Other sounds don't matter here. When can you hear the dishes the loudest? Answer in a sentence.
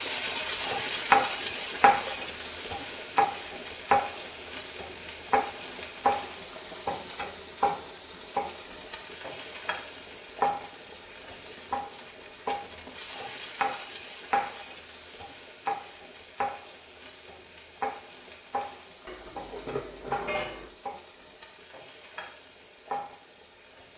The loudest moment of the dishes is at 20 seconds.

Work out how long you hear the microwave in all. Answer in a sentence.
The microwave can't be heard in this clip.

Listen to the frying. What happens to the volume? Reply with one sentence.
The loudness of the frying goes down.